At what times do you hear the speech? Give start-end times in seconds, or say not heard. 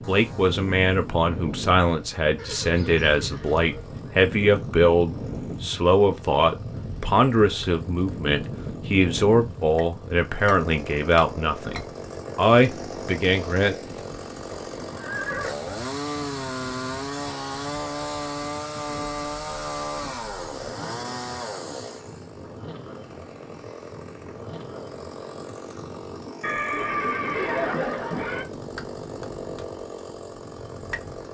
0.1-13.9.